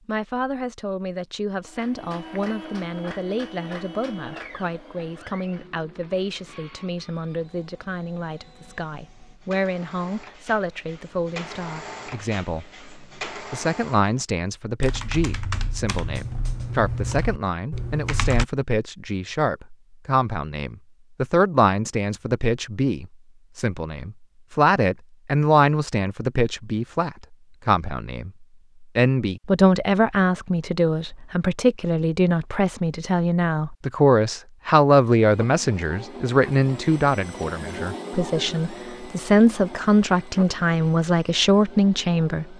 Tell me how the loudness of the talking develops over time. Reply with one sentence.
The loudness of the talking goes up.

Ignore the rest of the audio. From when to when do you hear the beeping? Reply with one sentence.
You can't hear the beeping here.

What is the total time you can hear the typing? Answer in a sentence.
The typing can be heard for 4 seconds in total.